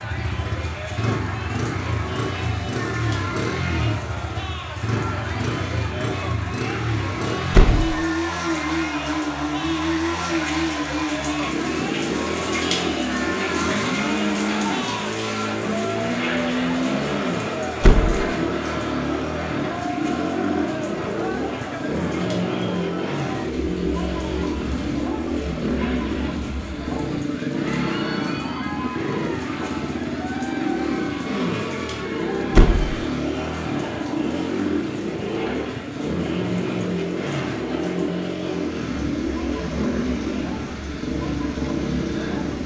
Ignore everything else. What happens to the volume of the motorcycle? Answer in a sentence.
The volume of the motorcycle stays about the same.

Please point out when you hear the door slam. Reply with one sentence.
The door slam can be heard from 7.5 to 8.0 s, from 17.8 to 18.3 s and from 32.5 to 33.0 s.